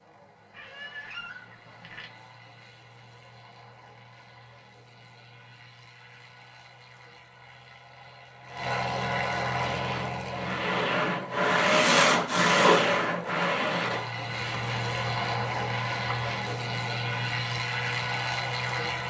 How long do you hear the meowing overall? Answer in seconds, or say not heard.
2 s.